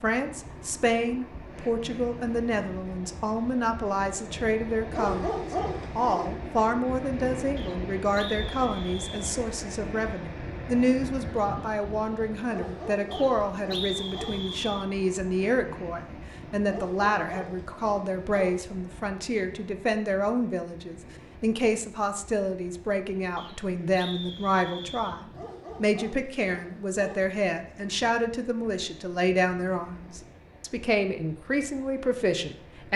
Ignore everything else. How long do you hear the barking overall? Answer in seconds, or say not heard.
7 s.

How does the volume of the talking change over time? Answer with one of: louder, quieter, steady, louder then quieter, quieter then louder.
steady.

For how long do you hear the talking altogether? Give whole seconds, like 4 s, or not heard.
33 s.